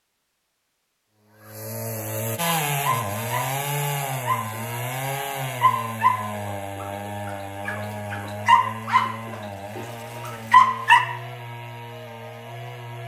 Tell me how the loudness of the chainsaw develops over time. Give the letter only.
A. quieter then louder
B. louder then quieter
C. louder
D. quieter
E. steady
D.